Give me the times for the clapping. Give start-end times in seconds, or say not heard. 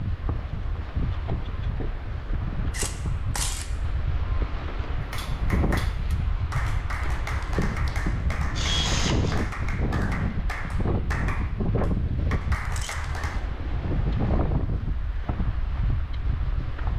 5.0-13.4.